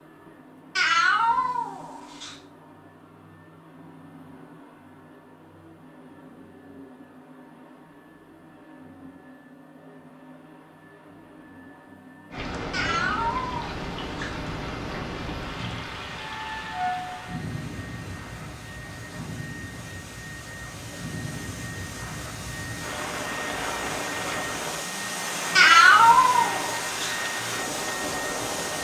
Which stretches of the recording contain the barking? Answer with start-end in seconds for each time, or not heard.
not heard.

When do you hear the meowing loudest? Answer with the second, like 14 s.
26 s.